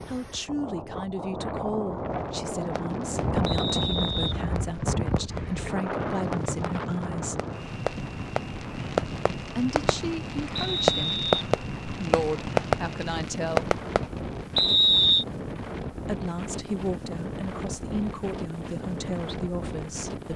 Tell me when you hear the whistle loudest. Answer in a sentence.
The loudest moment of the whistle is at 15 seconds.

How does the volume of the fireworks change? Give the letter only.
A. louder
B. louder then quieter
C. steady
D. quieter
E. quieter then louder
A.